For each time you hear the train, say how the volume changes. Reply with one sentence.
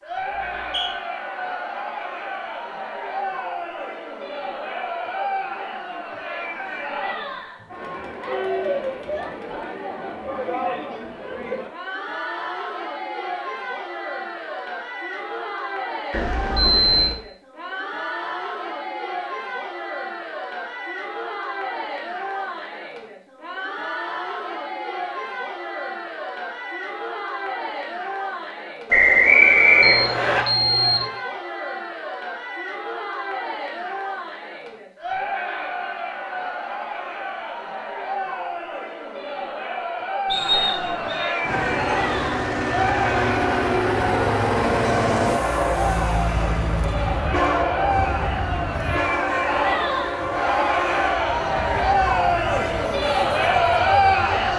The train can be heard from 41.4 to 54.5 s, getting quieter.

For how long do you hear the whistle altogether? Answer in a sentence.
The whistle can be heard for 3 seconds in total.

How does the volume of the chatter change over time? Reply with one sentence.
The volume of the chatter goes up.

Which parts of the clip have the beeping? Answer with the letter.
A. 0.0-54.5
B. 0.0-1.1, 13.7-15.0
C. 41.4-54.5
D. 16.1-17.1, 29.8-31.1
D.